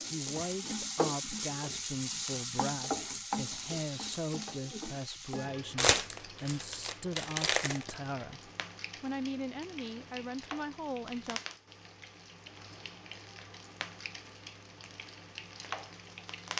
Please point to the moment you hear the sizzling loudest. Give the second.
3 s.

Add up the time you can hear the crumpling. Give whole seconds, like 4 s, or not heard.
2 s.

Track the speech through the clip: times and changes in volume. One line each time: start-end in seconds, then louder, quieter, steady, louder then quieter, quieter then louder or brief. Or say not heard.
0.1-11.4 steady.